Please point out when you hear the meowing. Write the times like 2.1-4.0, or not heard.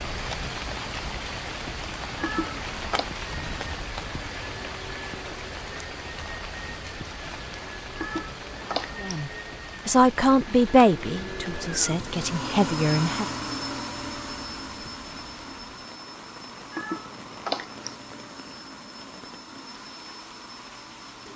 2.1-3.1, 8.0-9.1, 16.7-17.9.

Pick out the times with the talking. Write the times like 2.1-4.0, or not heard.
9.0-13.2.